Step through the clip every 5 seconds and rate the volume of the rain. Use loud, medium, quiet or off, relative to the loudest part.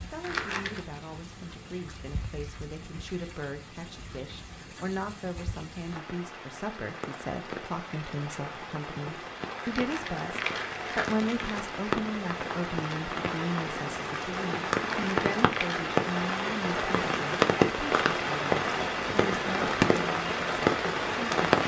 quiet, quiet, medium, loud, loud.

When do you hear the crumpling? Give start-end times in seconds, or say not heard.
0.2-0.8, 9.7-11.6, 14.8-15.9.